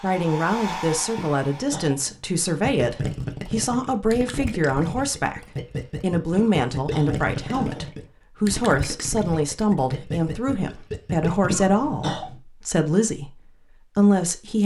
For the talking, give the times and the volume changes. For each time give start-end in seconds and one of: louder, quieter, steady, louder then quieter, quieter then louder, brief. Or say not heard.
0.0-14.6 steady.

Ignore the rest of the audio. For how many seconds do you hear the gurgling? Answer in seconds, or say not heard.
9 s.